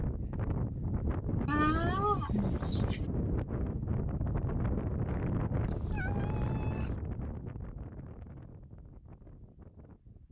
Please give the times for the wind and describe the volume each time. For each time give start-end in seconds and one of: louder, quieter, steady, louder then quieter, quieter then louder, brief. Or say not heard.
0.0-10.2 quieter.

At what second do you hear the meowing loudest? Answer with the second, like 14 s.
2 s.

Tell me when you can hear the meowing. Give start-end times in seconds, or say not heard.
1.4-3.0, 5.6-7.0.